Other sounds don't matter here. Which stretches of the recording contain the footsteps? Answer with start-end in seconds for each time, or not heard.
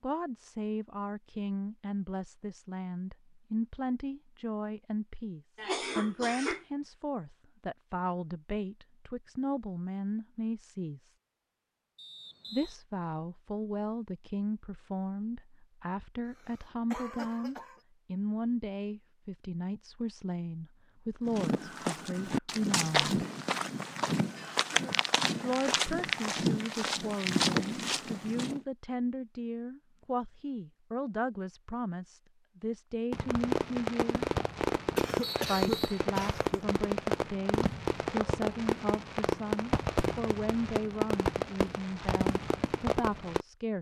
21.2-28.6.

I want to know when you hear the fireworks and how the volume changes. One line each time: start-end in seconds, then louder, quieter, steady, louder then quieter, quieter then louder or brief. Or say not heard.
33.1-43.5 steady.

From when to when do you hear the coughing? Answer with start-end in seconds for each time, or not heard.
5.5-6.7, 16.2-17.8, 35.0-36.6.